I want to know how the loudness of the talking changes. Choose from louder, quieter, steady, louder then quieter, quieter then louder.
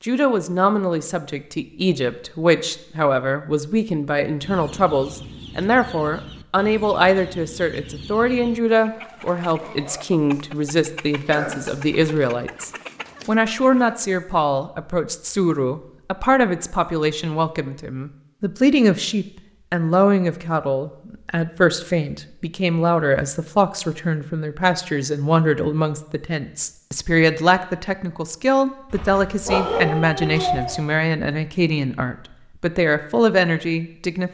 steady.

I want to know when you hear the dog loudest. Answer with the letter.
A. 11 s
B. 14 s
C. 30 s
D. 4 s
C.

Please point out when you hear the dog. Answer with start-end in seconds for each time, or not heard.
10.3-11.9, 28.9-30.8.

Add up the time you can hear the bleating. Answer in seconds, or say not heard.
not heard.